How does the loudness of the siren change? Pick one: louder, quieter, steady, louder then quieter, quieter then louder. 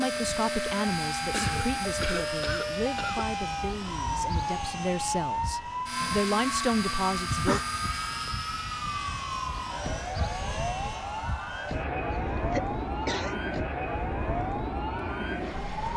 steady.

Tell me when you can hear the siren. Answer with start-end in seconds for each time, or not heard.
0.0-15.9.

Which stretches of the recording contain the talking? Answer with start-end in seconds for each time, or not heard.
0.0-7.6.